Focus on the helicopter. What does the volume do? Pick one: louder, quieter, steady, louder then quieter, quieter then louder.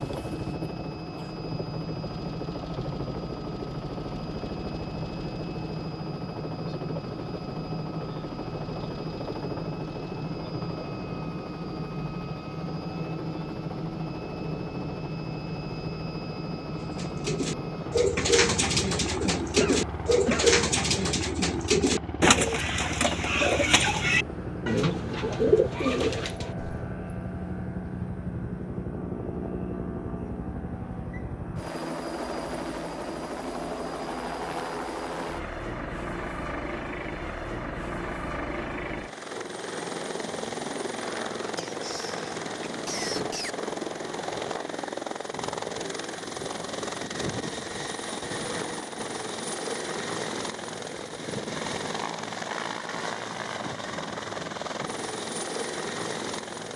steady.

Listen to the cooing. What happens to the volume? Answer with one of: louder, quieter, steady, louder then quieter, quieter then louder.
steady.